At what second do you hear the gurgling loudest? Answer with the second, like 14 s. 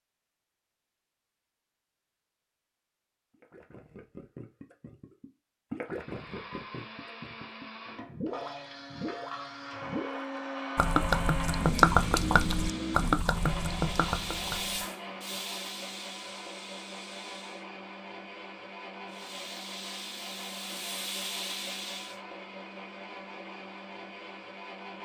12 s.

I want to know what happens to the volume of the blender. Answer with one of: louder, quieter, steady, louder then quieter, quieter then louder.
louder then quieter.